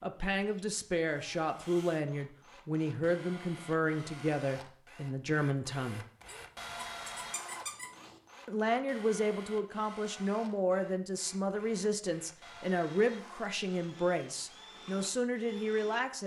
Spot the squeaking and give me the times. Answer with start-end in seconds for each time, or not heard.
6.2-8.2.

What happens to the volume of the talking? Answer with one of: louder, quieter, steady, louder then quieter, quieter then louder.
steady.